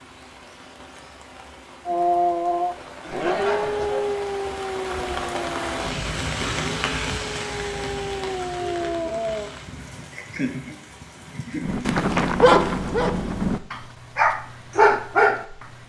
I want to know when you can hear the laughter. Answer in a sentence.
You can hear the laughter from 3.0 to 4.2 s and from 10.1 to 11.9 s.